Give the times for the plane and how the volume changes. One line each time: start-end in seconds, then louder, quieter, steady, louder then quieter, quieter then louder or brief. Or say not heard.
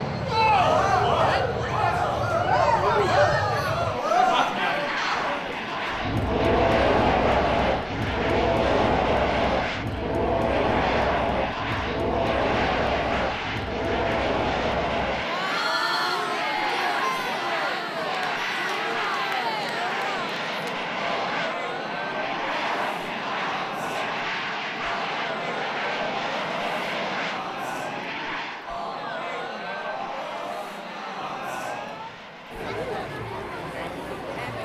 0.0-34.6 quieter.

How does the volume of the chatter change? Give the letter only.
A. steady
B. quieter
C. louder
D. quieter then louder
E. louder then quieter
B.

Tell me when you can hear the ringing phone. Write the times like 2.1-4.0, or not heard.
15.5-16.2.